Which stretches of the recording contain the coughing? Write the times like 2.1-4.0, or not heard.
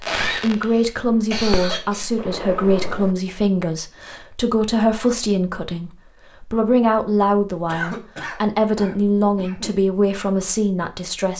0.1-2.0, 7.7-9.8.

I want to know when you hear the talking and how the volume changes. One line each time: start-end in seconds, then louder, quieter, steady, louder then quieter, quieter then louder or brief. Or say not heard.
0.3-11.3 steady.